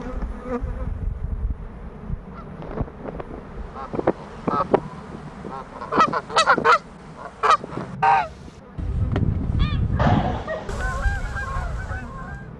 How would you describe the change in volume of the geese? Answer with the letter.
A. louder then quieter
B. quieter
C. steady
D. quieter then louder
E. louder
A.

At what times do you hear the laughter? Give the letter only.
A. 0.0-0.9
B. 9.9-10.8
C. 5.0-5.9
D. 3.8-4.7
B.